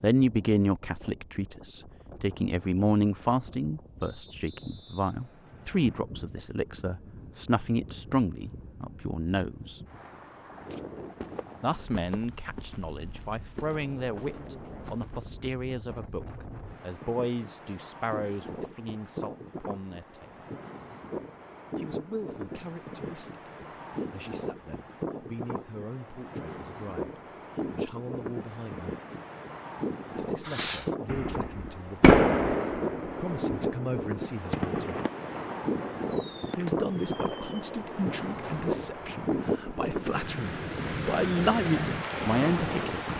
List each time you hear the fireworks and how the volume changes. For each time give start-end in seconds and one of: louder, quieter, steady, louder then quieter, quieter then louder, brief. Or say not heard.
30.4-39.2 quieter.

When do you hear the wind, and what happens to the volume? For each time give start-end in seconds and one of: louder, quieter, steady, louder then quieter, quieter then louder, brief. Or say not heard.
0.1-43.1 louder.